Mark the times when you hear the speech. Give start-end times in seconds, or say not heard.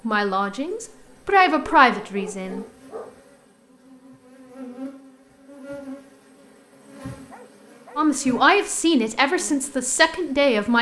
0.1-2.6, 8.0-10.7.